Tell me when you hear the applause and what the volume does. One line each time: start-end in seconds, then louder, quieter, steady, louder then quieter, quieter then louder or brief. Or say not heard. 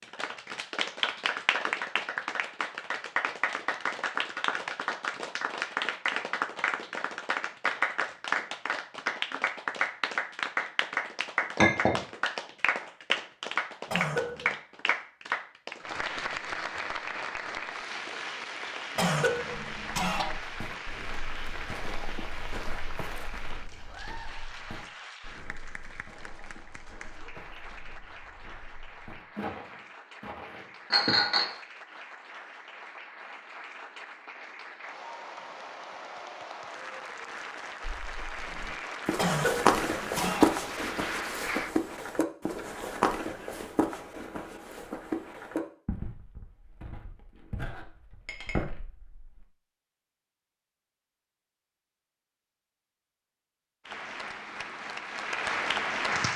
0.0-41.8 quieter then louder
53.9-56.3 brief.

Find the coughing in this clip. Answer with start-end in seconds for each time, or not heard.
13.9-14.6, 18.9-20.4, 39.1-40.6.